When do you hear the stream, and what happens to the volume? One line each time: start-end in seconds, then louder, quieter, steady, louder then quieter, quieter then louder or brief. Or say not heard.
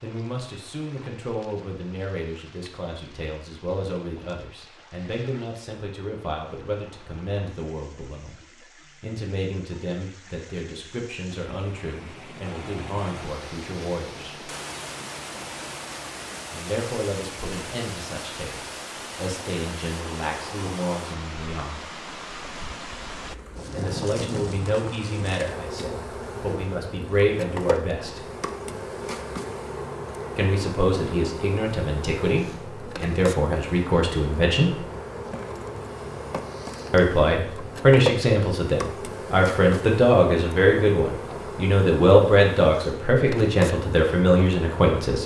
0.0-23.4 louder.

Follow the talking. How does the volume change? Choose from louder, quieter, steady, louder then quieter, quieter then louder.
louder.